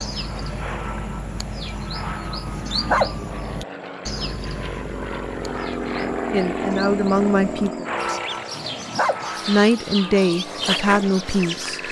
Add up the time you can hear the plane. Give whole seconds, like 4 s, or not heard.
12 s.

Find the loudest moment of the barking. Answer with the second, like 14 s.
3 s.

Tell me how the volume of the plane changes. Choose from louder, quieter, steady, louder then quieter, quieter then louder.
louder then quieter.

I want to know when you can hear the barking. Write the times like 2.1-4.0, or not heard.
2.5-3.2, 8.6-9.2.